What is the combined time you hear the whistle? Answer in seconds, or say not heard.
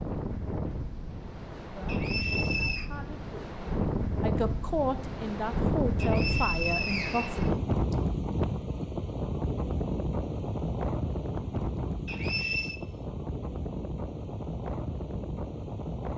4 s.